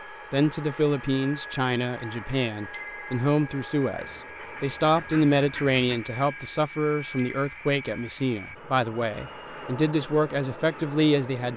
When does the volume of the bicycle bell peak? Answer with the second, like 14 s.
3 s.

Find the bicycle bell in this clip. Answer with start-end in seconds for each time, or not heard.
2.7-3.2, 7.2-7.7.